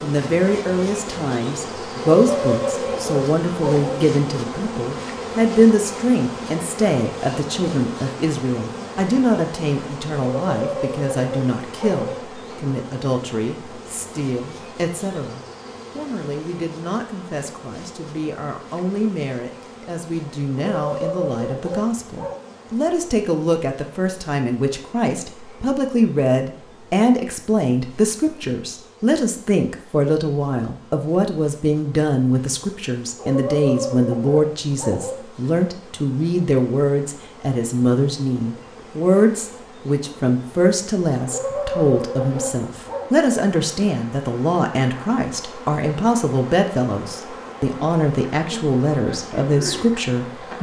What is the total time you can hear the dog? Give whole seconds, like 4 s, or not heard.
9 s.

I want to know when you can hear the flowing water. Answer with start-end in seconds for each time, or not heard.
not heard.